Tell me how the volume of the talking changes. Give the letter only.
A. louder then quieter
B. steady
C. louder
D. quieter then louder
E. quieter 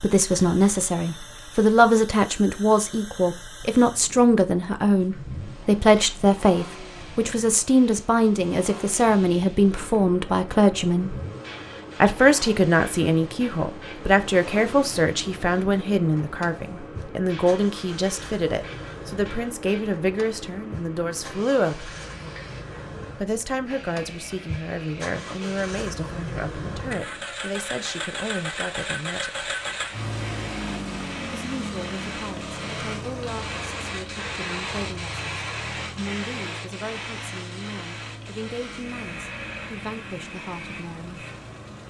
E.